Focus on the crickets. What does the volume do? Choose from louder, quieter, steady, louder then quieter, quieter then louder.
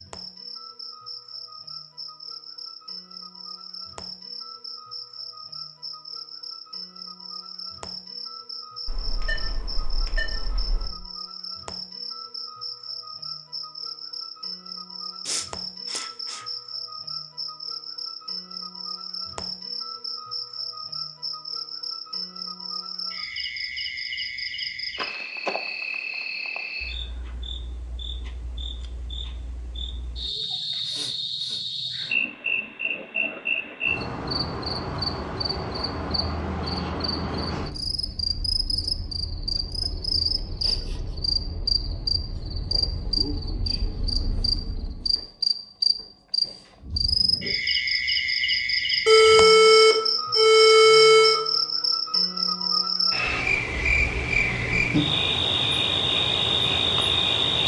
louder.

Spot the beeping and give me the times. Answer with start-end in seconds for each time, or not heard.
8.8-10.9, 49.0-51.4.